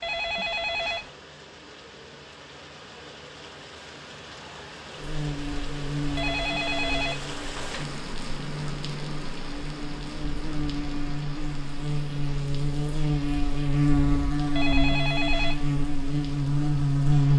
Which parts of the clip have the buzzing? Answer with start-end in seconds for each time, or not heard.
5.0-17.3.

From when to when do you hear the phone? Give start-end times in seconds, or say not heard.
0.0-1.1, 6.2-7.8, 14.6-15.7.